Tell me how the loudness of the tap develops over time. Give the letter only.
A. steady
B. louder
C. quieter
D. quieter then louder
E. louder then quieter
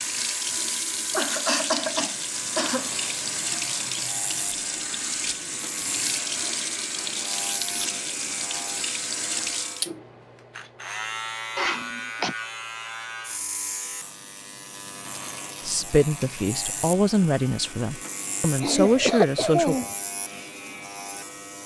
A.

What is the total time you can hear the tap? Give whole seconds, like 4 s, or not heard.
10 s.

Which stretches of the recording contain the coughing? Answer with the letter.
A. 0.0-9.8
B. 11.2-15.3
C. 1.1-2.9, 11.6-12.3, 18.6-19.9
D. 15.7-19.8
C.